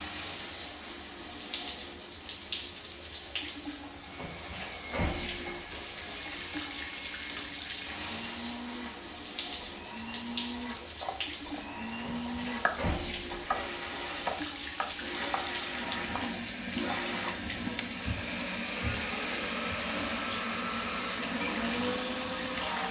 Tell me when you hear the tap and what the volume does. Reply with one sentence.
You can hear the tap from 0.0 to 22.8 s, at a steady volume.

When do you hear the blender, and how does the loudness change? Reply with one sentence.
You can hear the blender from 4.1 to 22.8 s, getting louder.